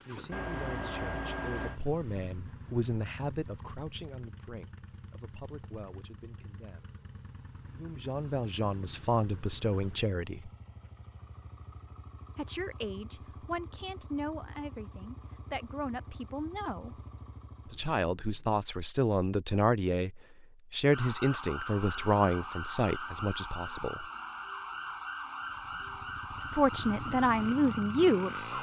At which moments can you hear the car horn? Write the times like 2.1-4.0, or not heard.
0.3-1.8.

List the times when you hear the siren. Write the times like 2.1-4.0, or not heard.
20.9-28.5.